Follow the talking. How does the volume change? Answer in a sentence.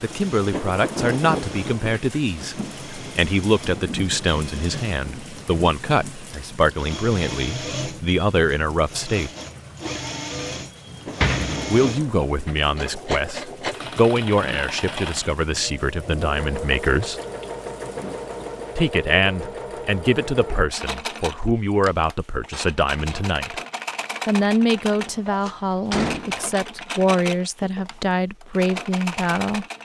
The volume of the talking stays about the same.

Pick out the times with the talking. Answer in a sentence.
The talking can be heard from 0.0 to 9.3 s, from 11.7 to 17.2 s, from 18.8 to 23.6 s and from 24.2 to 29.6 s.